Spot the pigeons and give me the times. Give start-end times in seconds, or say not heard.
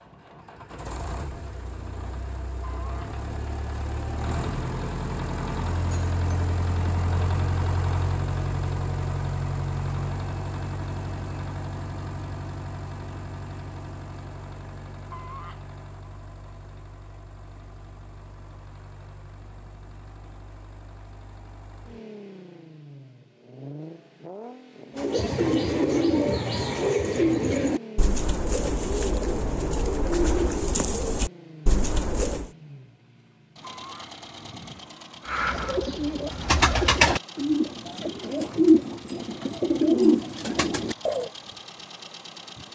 24.9-32.5, 35.2-41.3.